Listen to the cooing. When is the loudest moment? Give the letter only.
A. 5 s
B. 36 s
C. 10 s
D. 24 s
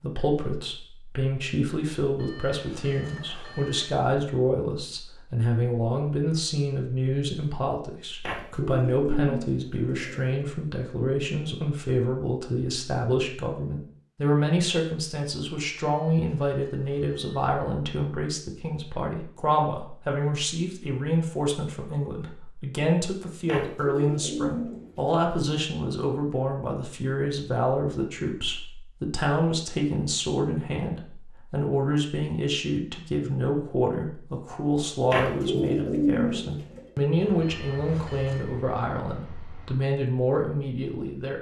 B.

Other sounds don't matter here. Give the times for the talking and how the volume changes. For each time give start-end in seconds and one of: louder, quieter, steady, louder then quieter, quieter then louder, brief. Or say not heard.
0.0-41.3 steady.